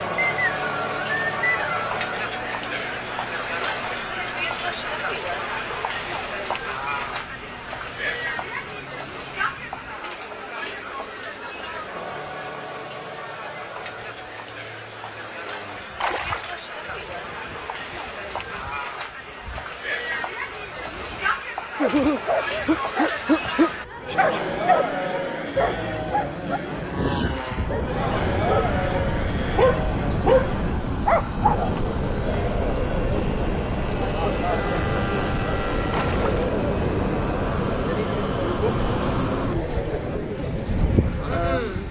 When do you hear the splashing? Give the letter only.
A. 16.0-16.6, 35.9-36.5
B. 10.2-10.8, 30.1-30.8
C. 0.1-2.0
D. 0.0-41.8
A.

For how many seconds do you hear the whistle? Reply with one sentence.
The whistle can be heard for 2 seconds in total.